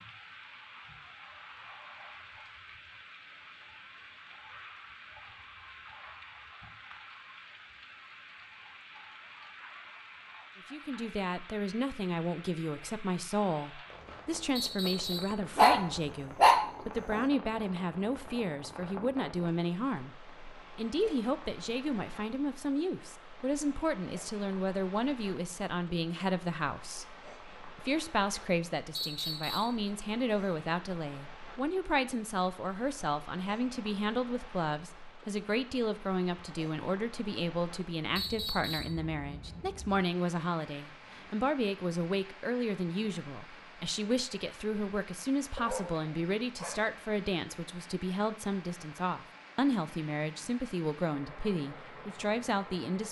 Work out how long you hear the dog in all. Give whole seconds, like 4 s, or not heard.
3 s.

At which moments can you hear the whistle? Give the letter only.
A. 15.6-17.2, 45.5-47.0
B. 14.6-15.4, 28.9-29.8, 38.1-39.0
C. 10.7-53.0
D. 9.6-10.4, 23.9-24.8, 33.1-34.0
B.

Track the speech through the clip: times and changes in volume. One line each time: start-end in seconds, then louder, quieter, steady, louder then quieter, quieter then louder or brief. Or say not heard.
10.7-53.0 steady.